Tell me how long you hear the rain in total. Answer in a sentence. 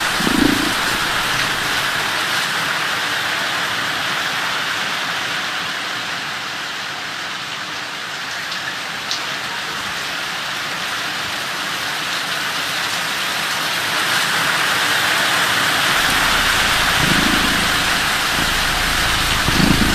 The rain can be heard for 20 seconds in total.